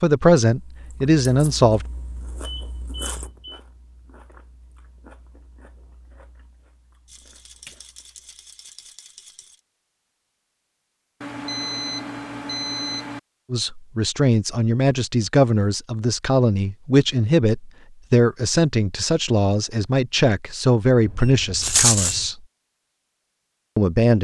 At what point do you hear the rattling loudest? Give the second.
22 s.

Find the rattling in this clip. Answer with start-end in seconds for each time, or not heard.
7.0-9.6, 21.6-22.2.